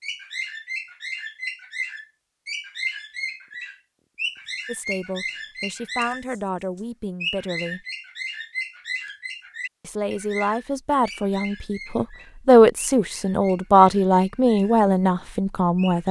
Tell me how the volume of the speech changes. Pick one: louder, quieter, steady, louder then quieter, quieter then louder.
louder.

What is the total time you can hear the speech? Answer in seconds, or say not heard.
9 s.